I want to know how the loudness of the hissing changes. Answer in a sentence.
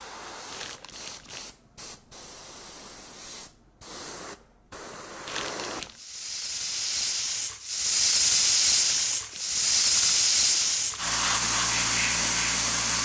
The volume of the hissing goes up.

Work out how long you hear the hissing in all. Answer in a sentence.
You can hear the hissing for 13 seconds altogether.